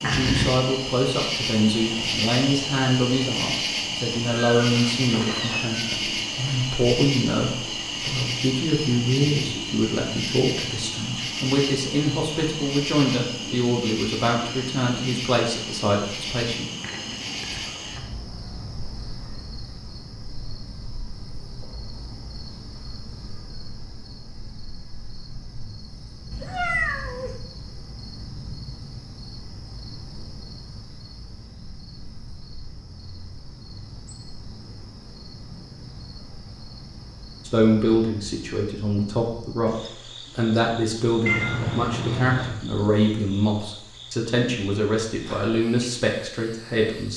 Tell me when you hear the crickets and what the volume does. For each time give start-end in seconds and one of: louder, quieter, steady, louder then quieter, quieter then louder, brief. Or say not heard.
0.0-47.1 quieter.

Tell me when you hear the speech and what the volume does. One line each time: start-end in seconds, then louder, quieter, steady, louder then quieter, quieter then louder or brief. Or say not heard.
0.0-16.6 steady
37.5-47.1 steady.